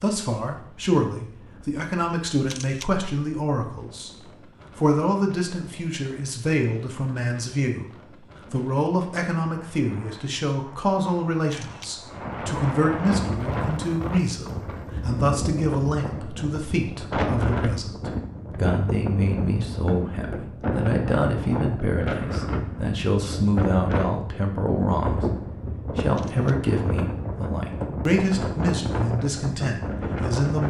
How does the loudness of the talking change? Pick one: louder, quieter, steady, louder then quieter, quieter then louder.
steady.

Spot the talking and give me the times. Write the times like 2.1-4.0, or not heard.
0.0-4.2, 4.8-30.6.